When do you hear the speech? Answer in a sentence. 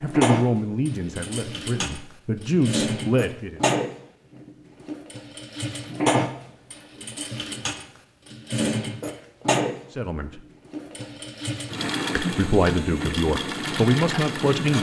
The speech can be heard from 0.0 to 3.6 s, from 9.9 to 10.4 s and from 12.2 to 14.7 s.